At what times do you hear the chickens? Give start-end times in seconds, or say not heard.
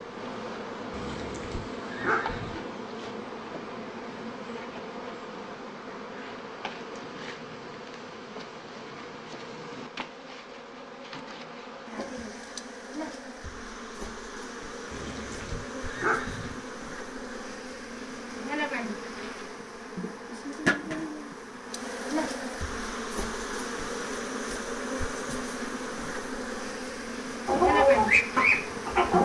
27.4-29.2.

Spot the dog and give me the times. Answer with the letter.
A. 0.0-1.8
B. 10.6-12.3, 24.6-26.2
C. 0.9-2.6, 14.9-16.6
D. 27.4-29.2
C.